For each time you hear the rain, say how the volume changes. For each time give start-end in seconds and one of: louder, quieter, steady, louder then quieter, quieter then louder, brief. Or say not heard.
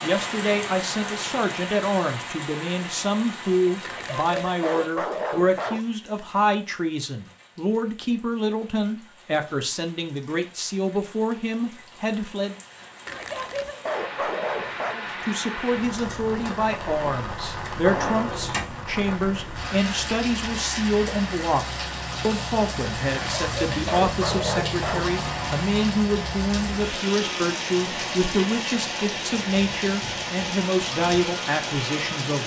0.0-32.4 quieter then louder.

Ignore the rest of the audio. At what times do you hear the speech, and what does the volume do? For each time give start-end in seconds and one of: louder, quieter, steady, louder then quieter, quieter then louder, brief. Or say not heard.
0.0-12.6 steady
14.9-32.4 steady.